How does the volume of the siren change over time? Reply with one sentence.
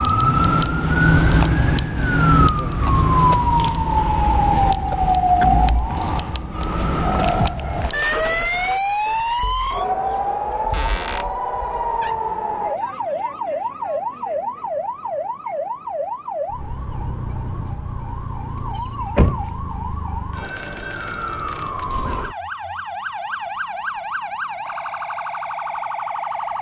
The loudness of the siren goes down.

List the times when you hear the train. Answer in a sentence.
You can't hear the train here.